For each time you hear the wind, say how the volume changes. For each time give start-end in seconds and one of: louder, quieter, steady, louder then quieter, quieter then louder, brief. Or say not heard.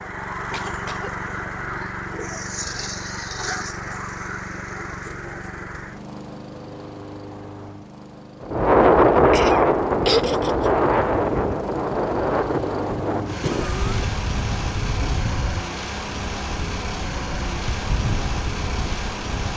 8.4-19.5 quieter.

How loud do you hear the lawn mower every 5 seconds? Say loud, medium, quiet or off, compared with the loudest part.
loud, medium, loud, loud.